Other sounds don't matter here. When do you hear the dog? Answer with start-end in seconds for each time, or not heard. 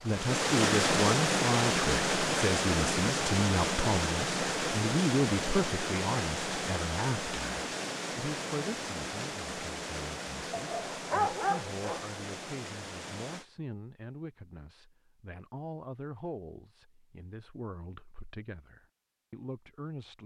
10.5-12.1.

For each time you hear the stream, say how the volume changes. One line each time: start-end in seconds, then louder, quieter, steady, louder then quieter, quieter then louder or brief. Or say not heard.
0.0-13.4 quieter.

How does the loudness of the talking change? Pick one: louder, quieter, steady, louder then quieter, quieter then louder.
quieter.